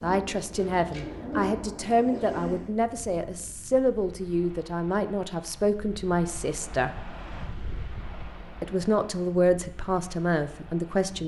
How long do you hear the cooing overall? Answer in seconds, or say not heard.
3 s.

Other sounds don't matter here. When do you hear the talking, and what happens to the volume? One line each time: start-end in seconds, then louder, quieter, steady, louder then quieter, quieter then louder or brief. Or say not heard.
0.0-7.0 steady
8.6-11.2 brief.